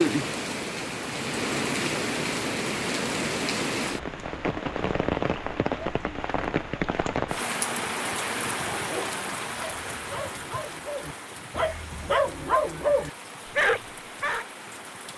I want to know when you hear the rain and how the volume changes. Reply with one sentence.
The rain can be heard from 0.0 to 15.1 s, getting quieter.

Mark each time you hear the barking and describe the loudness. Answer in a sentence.
You can hear the barking from 8.6 to 14.4 s, getting louder.